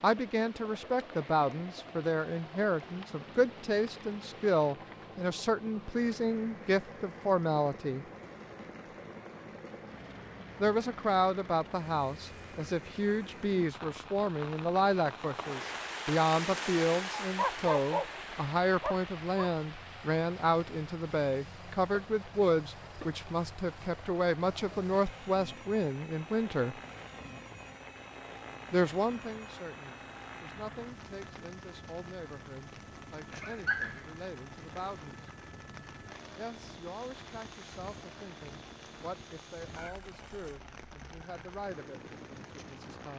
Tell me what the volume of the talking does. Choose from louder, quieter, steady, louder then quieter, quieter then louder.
quieter.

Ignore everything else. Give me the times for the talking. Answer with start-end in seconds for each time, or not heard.
0.0-8.1, 10.6-26.8, 28.7-35.3, 36.4-43.1.